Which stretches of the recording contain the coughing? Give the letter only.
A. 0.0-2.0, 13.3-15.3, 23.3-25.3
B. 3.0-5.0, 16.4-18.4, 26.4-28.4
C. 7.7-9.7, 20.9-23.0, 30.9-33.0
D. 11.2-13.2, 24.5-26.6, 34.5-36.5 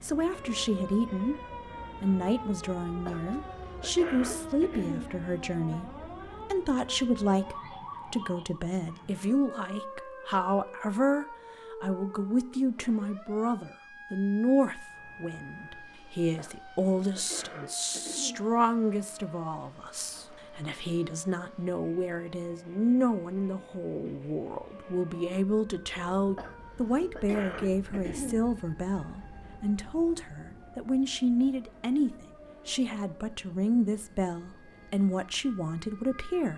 B.